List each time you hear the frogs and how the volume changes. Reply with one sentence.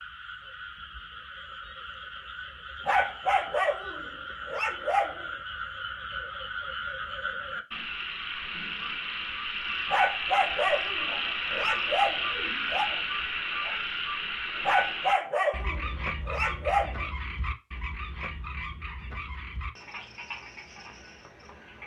The frogs can be heard from 0.0 to 21.8 s, getting louder then quieter.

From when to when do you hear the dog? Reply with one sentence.
The dog can be heard from 2.9 to 5.3 s, from 9.9 to 12.9 s and from 14.7 to 17.1 s.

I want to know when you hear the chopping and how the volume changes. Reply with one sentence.
The chopping can't be heard in this clip.